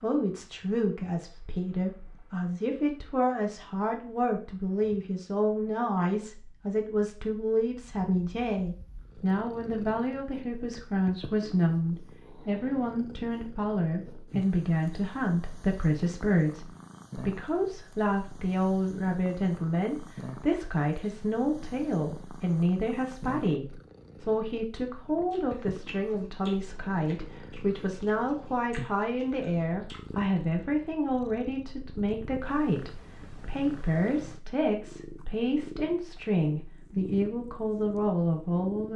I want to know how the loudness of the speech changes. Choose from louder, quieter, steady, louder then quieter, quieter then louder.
steady.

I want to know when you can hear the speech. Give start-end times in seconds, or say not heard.
0.0-38.9.